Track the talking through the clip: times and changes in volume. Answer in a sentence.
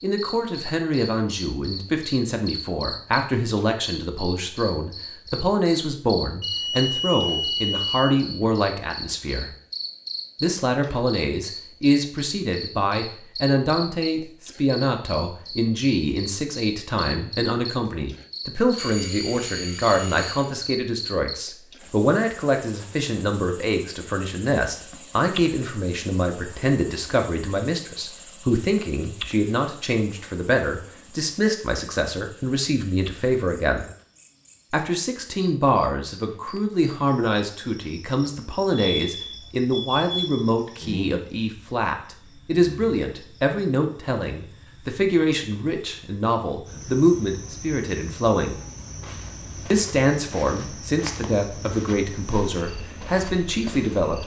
The talking can be heard from 0.0 to 9.5 s, at a steady volume; from 10.4 to 33.9 s, at a steady volume; from 34.7 to 48.6 s, at a steady volume; and from 49.7 to 54.2 s, at a steady volume.